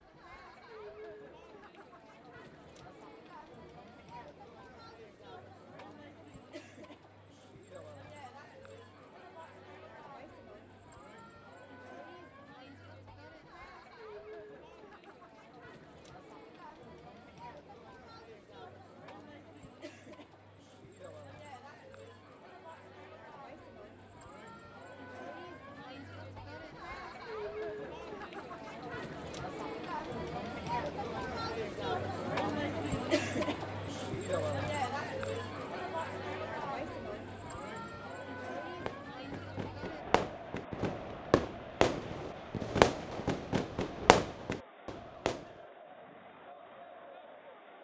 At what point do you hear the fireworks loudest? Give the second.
43 s.